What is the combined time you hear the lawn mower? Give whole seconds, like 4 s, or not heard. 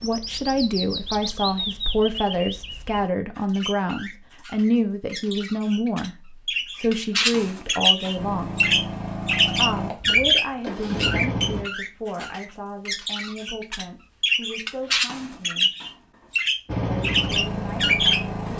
5 s.